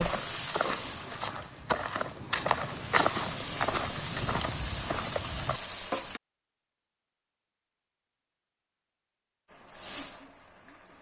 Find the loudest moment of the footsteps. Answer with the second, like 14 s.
3 s.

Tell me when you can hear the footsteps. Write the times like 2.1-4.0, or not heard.
0.0-5.6.